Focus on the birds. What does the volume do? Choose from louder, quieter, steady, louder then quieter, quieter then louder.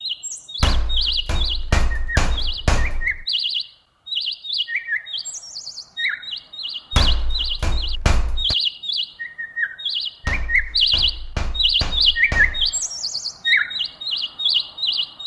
louder.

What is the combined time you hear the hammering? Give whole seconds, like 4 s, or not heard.
7 s.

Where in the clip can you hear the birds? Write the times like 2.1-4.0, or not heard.
0.0-15.2.